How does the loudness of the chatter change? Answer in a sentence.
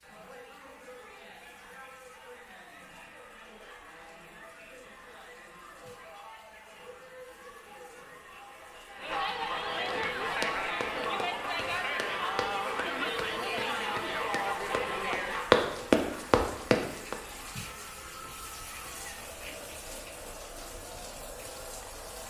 The loudness of the chatter goes up, then down.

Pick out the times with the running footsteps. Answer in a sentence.
You can hear the running footsteps from 9.8 to 17.1 s.